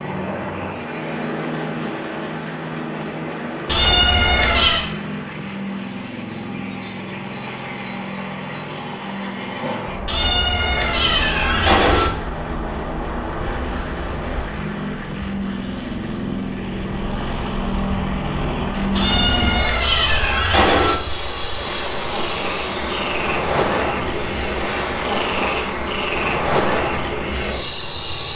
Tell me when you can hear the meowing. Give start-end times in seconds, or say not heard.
3.6-4.8, 10.1-12.1, 18.9-20.9.